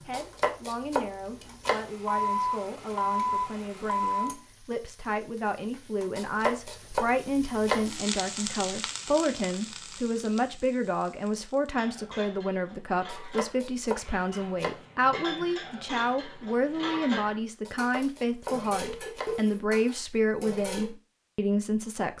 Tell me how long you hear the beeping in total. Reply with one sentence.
You can hear the beeping for 3 seconds altogether.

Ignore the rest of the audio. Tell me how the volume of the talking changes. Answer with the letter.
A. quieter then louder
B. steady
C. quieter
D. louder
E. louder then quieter
D.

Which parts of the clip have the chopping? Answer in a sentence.
You can hear the chopping from 0.1 to 1.9 s, from 6.2 to 7.9 s, from 13.1 to 14.8 s and from 17.6 to 19.4 s.